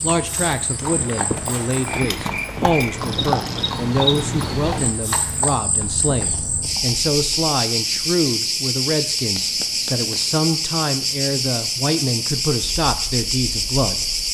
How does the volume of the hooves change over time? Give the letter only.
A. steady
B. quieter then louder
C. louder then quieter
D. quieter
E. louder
D.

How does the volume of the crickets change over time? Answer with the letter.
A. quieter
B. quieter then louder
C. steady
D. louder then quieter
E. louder
E.